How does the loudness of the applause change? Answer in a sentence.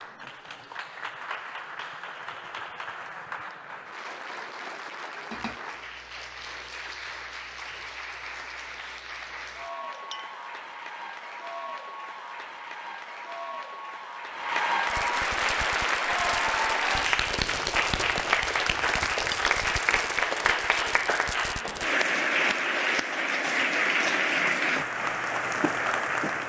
The volume of the applause goes up.